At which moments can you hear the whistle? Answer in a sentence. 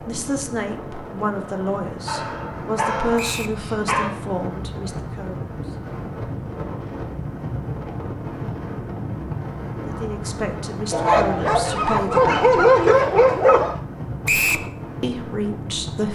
The whistle can be heard from 3.1 to 3.6 s and from 14.2 to 14.7 s.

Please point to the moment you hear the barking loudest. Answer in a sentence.
The loudest moment of the barking is at 13 seconds.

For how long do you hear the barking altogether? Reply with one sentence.
The barking can be heard for 5 seconds in total.